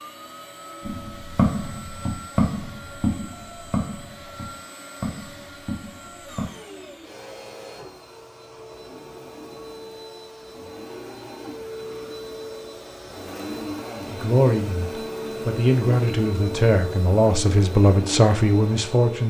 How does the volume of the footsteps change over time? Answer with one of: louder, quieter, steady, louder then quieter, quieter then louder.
quieter.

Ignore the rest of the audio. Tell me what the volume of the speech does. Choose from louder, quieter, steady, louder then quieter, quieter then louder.
louder.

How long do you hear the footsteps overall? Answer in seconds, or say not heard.
6 s.